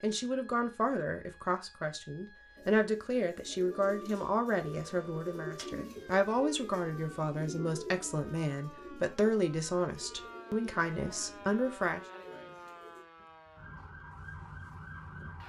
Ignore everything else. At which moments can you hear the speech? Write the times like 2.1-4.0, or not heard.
0.0-12.0.